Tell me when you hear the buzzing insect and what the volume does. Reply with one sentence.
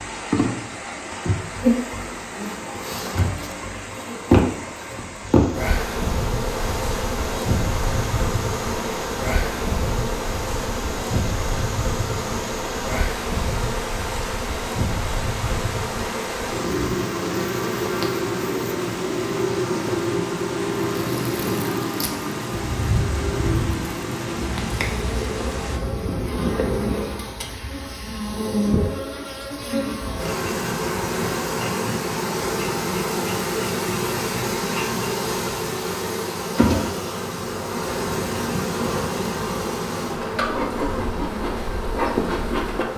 The buzzing insect can be heard from 0.0 to 42.9 s, at a steady volume.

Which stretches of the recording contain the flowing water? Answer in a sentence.
The flowing water can be heard from 0.0 to 25.8 s.